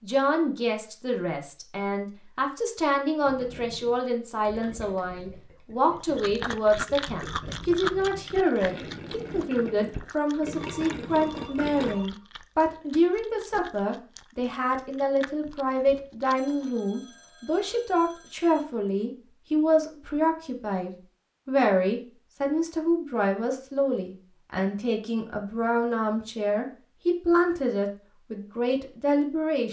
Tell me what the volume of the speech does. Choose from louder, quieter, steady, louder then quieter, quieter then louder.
steady.